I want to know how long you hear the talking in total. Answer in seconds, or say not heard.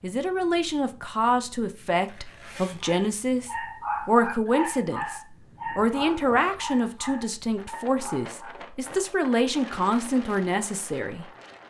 11 s.